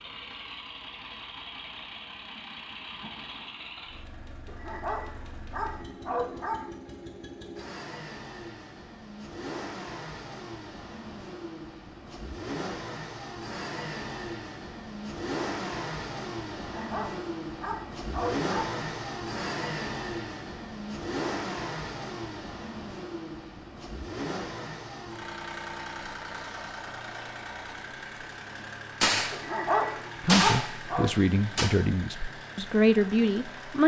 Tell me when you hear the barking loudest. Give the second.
30 s.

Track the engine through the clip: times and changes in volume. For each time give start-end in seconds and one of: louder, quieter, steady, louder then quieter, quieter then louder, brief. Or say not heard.
0.0-33.8 louder then quieter.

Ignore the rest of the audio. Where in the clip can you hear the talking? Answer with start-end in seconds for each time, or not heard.
30.2-33.8.